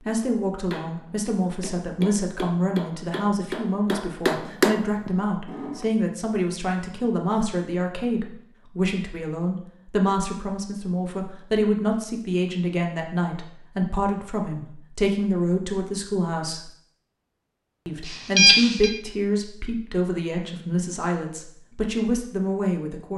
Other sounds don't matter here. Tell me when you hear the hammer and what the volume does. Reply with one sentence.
The hammer can be heard from 0.7 to 5.8 s, getting louder.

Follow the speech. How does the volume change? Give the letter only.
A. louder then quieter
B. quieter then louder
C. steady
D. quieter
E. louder
C.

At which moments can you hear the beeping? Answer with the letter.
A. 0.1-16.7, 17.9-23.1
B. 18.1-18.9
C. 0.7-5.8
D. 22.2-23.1
B.